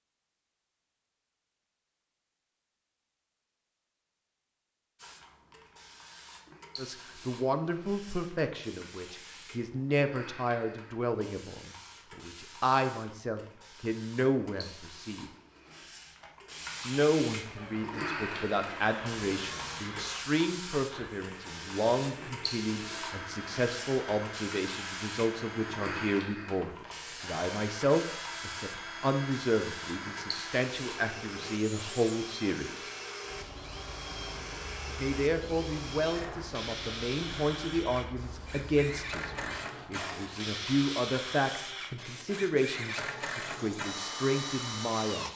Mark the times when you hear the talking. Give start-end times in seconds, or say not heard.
6.8-15.3, 16.9-32.9, 34.9-45.3.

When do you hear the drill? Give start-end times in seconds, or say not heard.
17.6-45.3.